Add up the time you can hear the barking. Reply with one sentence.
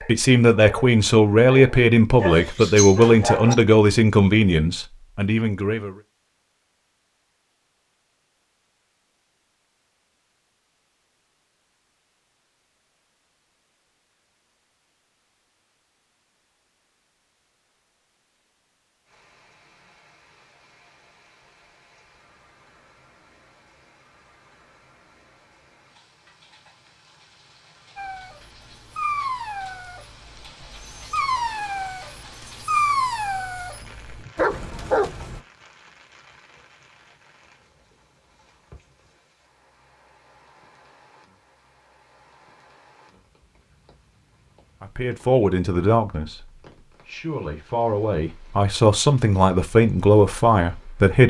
The barking can be heard for 11 seconds in total.